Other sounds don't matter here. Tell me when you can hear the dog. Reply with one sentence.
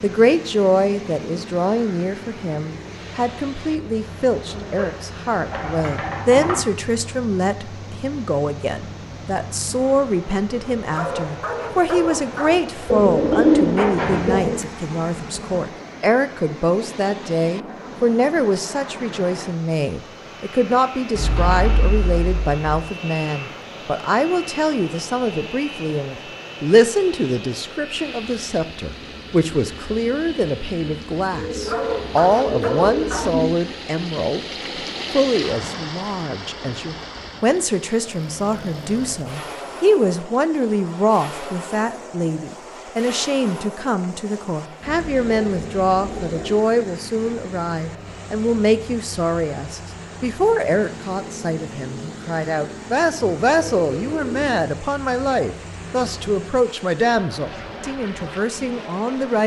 The dog can be heard from 10.9 to 12.6 s and from 31.6 to 33.3 s.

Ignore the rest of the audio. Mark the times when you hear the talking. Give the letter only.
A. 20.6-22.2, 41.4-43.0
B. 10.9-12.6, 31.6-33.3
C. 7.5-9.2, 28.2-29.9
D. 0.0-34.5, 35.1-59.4
D.